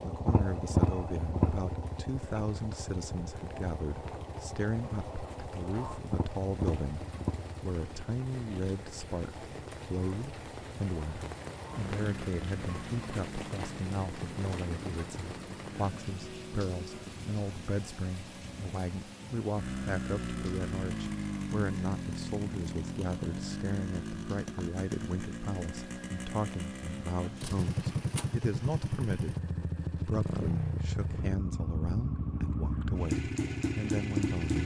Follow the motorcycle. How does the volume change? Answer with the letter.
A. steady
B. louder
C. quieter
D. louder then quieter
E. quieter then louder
E.